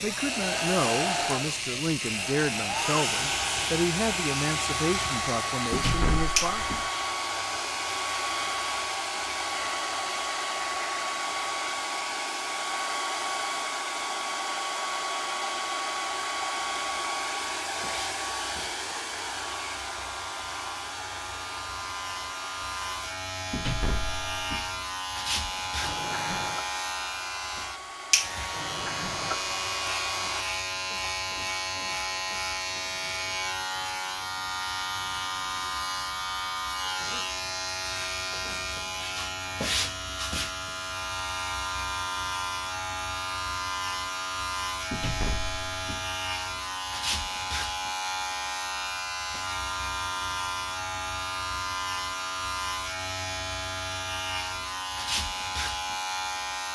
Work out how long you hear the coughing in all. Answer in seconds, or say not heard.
2 s.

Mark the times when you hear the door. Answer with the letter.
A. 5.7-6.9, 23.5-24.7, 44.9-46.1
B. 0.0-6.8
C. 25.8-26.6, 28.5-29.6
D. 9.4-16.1
A.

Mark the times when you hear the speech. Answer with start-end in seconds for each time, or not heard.
0.0-6.8.